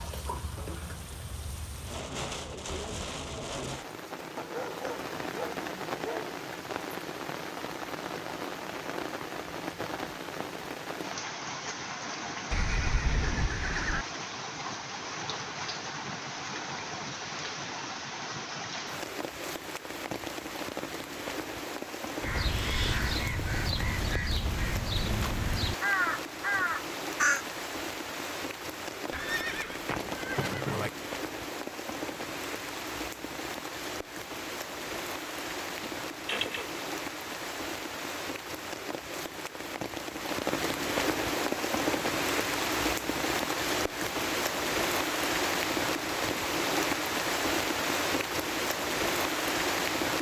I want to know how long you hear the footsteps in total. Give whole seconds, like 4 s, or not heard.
not heard.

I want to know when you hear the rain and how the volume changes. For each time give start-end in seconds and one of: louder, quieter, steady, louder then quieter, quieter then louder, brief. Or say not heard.
0.0-50.1 louder.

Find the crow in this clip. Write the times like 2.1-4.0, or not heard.
22.2-27.4.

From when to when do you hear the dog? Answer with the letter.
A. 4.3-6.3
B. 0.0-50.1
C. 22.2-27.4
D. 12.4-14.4
A.